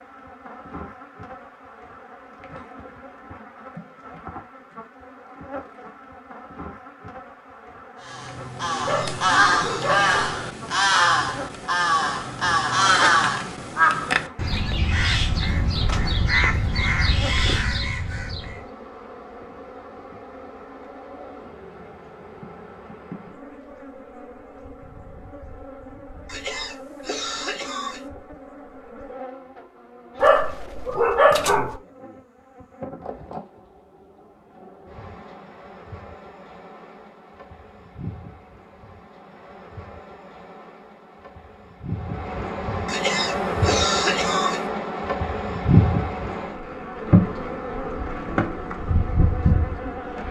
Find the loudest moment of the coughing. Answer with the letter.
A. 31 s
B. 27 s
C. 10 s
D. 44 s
D.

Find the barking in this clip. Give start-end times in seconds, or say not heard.
8.8-10.2, 30.2-31.8.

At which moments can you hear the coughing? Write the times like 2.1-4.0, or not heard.
8.8-10.0, 26.2-28.0, 42.9-44.6.